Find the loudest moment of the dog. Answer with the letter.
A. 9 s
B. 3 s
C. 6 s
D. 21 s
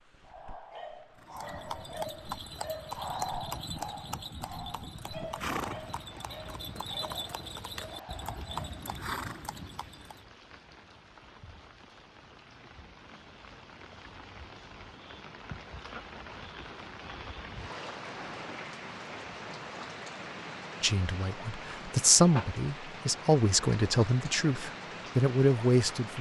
B.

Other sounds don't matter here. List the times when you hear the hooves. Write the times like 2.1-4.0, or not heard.
1.1-10.2.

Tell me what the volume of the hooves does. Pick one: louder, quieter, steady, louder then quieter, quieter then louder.
steady.